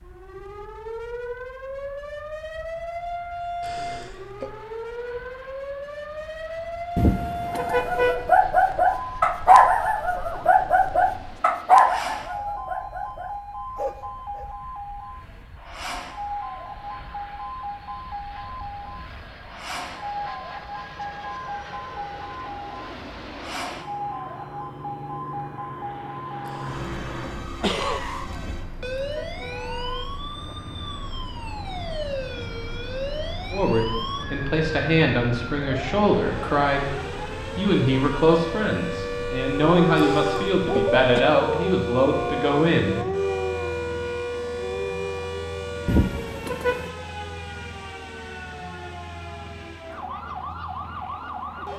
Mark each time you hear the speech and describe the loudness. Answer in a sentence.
The speech can be heard from 33.5 to 43.0 s, at a steady volume.